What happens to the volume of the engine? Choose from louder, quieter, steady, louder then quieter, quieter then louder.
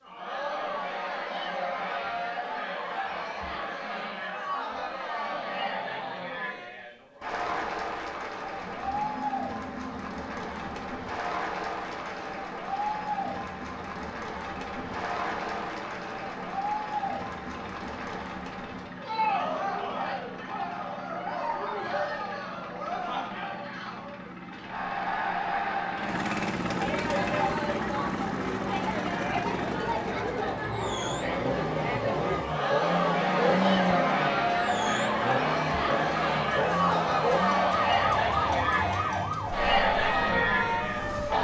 louder.